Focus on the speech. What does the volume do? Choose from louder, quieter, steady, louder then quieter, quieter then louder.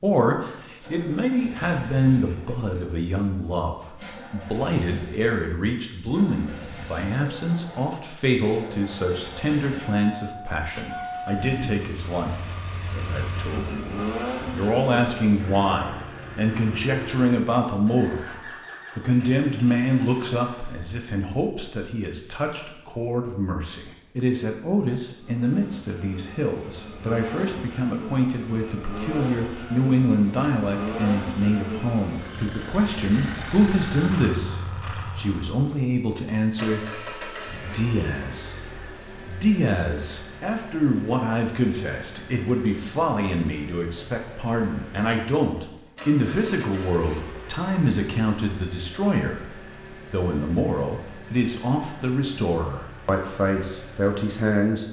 steady.